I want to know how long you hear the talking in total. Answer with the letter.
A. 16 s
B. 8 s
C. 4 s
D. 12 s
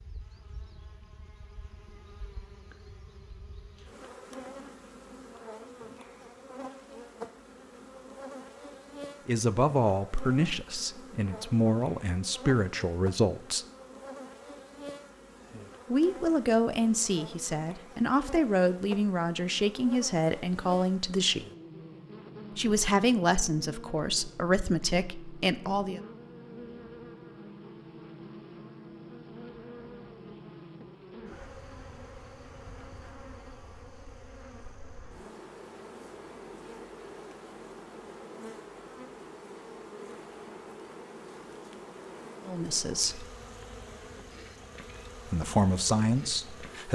A.